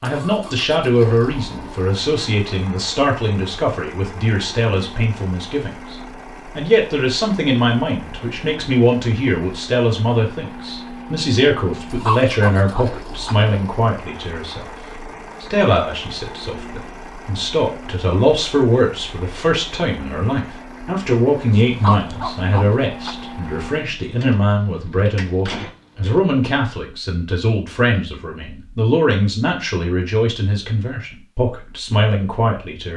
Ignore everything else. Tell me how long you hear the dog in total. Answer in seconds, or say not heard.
3 s.